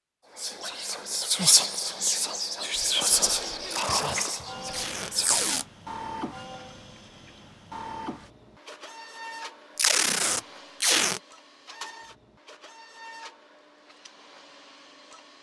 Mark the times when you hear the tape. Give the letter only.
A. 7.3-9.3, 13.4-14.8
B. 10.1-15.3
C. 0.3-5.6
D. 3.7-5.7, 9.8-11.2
D.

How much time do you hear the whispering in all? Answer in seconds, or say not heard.
5 s.